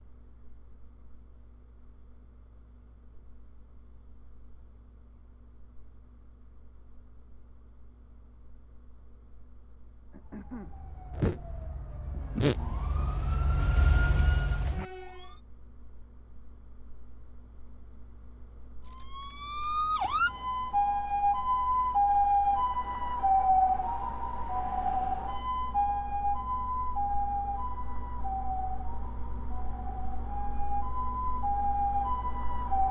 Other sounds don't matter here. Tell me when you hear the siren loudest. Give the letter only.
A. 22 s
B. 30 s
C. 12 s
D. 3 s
A.